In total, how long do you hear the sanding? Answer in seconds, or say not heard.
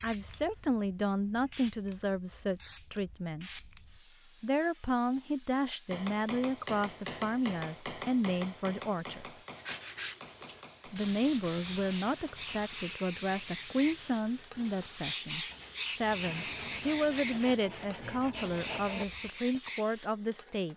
10 s.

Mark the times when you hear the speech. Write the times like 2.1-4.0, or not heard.
0.0-3.7, 4.4-9.3, 10.9-20.7.